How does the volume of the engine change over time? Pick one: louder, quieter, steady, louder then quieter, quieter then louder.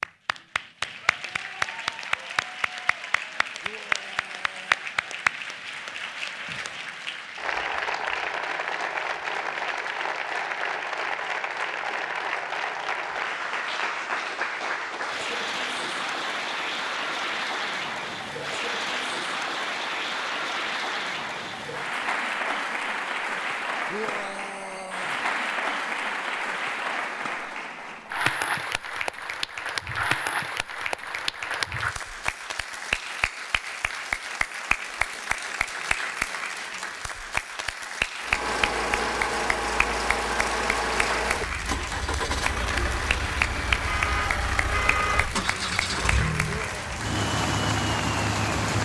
steady.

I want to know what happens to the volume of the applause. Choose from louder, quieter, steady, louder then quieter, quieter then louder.
steady.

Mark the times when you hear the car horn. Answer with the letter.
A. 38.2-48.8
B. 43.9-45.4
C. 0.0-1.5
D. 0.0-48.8
B.